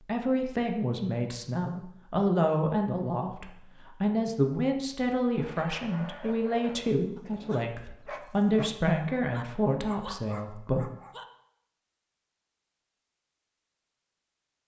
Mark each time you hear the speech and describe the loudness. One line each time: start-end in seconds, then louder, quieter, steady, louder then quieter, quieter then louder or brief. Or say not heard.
0.1-10.9 steady.